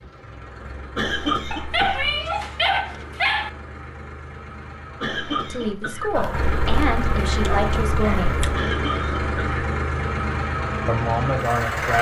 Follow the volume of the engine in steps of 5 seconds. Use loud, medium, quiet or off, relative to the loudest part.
quiet, loud, loud.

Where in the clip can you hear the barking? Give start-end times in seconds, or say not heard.
1.5-3.5, 6.1-8.7.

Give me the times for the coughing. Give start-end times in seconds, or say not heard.
0.9-2.1, 5.0-6.2, 8.5-9.7.